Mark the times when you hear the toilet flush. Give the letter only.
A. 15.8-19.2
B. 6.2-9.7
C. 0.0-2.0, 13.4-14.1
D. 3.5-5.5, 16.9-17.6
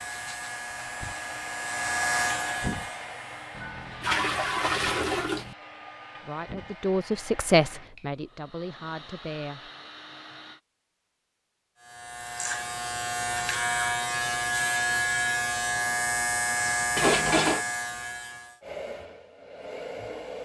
D.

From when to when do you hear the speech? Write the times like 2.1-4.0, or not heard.
6.2-9.7.